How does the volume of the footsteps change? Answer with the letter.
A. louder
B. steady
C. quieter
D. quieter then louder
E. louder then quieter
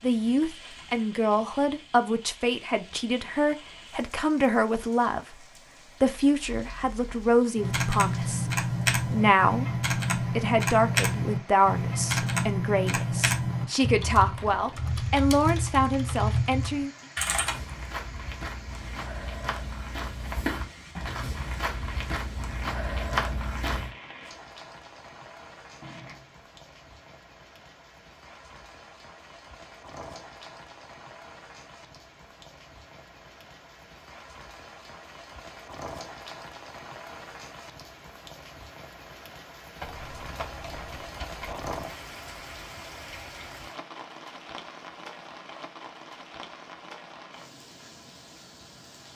A.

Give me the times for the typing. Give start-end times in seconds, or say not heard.
7.5-17.6.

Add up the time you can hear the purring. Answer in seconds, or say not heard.
not heard.